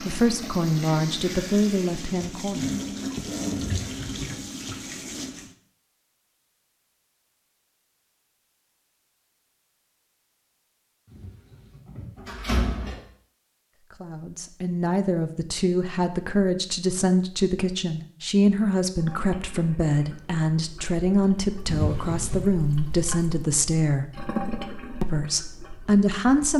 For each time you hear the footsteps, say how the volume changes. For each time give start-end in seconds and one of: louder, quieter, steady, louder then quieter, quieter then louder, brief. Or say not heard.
not heard.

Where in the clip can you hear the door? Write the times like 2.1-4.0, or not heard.
3.5-4.3, 11.1-13.0, 21.6-22.4.